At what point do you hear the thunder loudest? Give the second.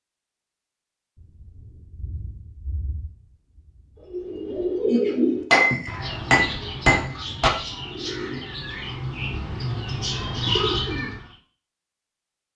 2 s.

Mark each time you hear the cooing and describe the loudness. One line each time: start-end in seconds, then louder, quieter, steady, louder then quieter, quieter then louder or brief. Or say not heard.
4.1-11.2 quieter then louder.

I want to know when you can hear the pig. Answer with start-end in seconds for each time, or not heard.
not heard.